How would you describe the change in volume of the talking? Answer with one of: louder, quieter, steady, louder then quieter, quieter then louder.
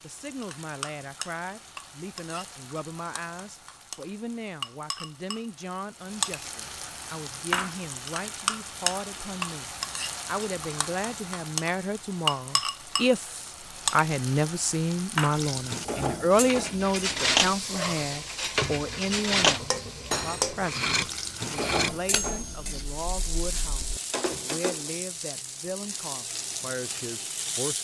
louder then quieter.